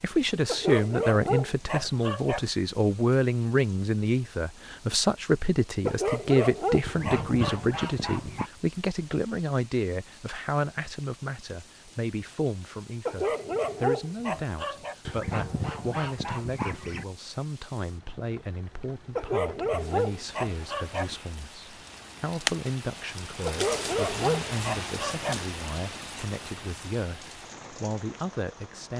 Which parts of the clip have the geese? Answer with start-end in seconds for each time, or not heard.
6.8-8.5, 15.1-17.1.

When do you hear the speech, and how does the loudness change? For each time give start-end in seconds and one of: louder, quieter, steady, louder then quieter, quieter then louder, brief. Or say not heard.
0.0-28.9 quieter.